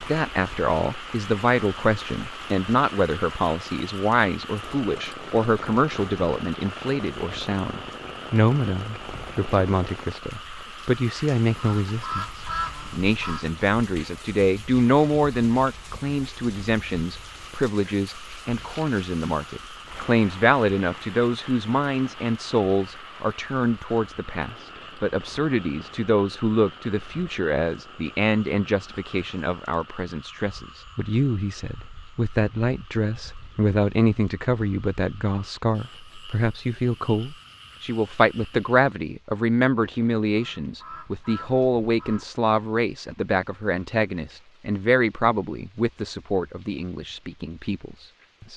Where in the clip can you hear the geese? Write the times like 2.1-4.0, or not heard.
11.6-13.4, 40.4-42.4.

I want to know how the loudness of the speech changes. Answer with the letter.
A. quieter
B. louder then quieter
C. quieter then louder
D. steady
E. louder
D.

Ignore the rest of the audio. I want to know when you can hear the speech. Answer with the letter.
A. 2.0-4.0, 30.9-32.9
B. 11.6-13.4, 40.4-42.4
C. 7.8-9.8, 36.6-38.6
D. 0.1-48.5
D.